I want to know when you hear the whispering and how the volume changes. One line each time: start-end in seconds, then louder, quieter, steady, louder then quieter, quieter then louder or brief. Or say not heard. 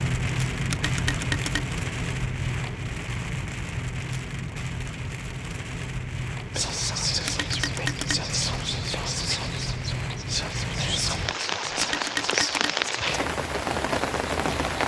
6.5-13.2 steady.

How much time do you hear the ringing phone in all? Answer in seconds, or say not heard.
3 s.